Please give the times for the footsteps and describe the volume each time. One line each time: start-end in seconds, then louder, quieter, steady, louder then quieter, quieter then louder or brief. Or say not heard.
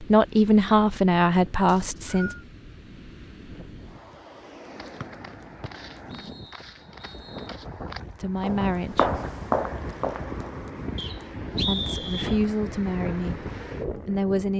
4.6-10.4 louder.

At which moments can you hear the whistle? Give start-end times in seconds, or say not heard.
1.6-2.5, 5.0-7.5, 10.9-12.4.